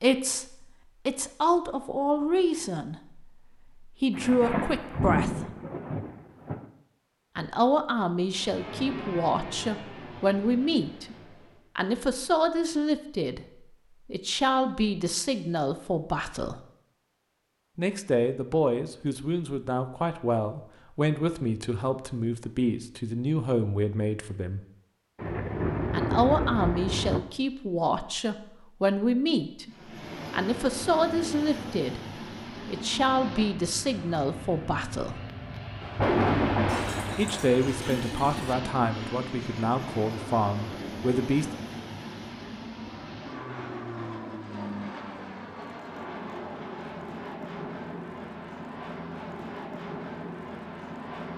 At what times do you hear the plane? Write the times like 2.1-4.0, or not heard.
8.3-11.8, 29.6-51.3.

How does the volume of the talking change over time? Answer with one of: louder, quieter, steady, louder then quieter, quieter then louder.
steady.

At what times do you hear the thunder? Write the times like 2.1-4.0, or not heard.
4.2-6.7, 25.2-27.2, 35.8-38.8.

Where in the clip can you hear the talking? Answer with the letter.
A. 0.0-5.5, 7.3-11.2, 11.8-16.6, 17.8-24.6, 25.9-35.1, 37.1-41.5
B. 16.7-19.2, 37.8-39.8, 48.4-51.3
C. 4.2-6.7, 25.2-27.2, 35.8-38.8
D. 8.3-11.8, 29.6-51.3
A.